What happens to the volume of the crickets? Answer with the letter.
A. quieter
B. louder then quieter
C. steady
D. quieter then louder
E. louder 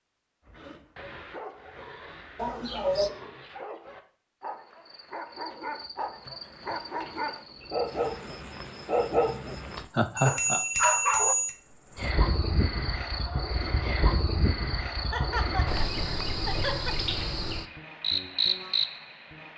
E.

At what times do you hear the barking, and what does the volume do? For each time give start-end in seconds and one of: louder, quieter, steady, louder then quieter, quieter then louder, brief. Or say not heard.
0.5-11.3 louder.